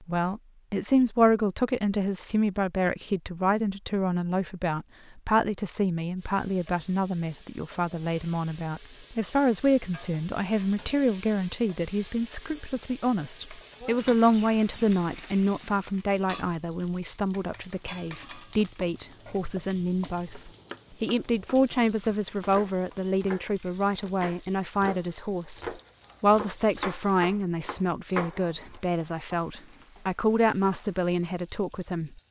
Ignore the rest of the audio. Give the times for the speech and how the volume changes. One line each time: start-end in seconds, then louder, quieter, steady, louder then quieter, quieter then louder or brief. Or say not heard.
0.1-32.1 steady.